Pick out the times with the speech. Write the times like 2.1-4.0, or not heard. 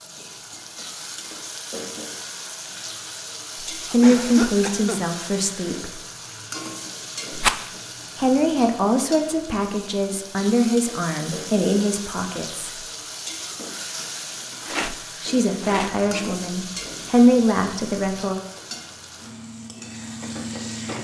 3.7-6.0, 8.2-12.7, 15.2-18.4.